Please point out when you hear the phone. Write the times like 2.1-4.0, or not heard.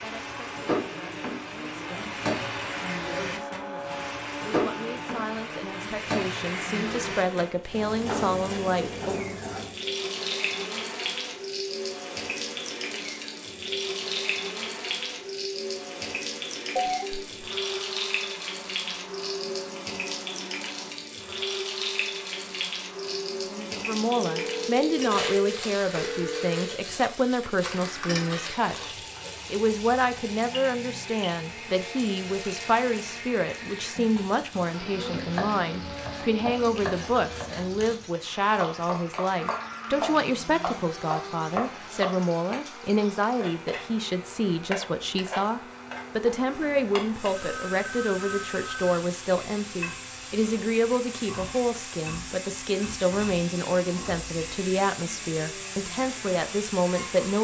16.8-17.3, 24.2-26.8, 47.4-48.9.